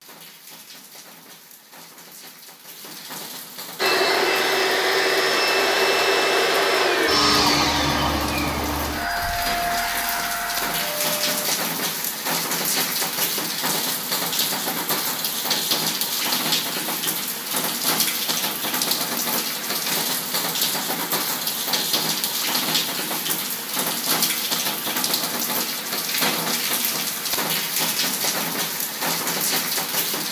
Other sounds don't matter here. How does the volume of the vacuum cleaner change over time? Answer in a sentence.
The volume of the vacuum cleaner goes down.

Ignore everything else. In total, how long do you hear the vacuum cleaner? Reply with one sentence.
You can hear the vacuum cleaner for 8 seconds altogether.